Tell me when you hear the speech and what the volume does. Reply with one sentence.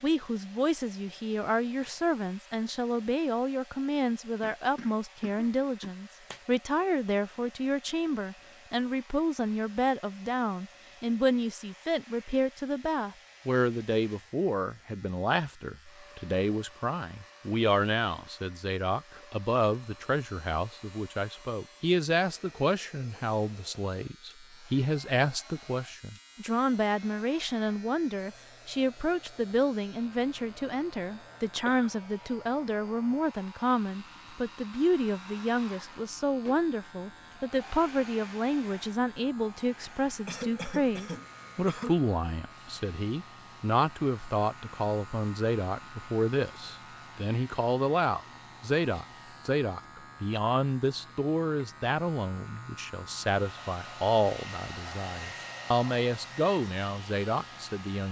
You can hear the speech from 0.0 to 58.0 s, at a steady volume.